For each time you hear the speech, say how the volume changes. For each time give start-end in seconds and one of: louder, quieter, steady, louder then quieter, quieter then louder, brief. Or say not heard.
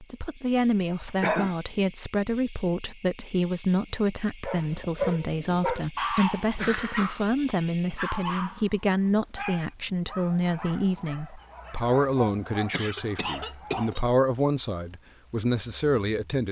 0.0-16.4 steady.